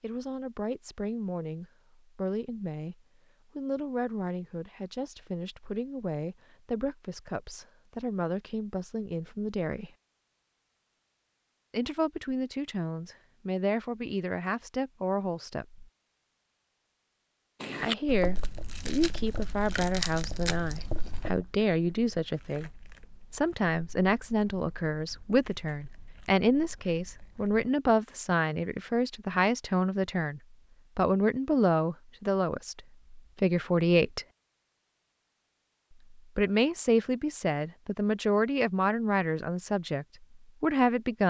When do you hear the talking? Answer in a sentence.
The talking can be heard from 0.0 to 3.0 s, from 3.5 to 9.9 s, from 11.7 to 15.8 s, from 17.8 to 22.7 s, from 23.3 to 34.2 s and from 36.1 to 41.2 s.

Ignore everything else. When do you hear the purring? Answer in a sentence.
You can't hear the purring here.